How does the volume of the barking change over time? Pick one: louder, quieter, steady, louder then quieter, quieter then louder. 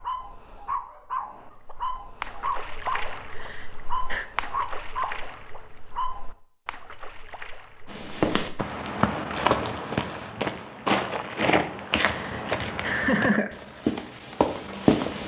steady.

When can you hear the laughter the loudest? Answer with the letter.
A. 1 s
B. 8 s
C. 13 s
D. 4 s
C.